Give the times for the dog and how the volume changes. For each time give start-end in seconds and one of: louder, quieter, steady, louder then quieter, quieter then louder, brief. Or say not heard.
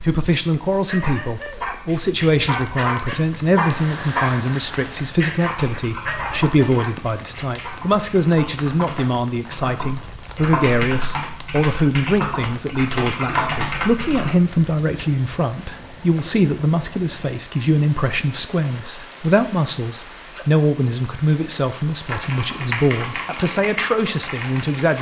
0.8-7.8 louder then quieter.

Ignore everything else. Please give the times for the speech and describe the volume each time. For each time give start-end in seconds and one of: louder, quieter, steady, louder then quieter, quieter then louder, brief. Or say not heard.
0.0-24.9 steady.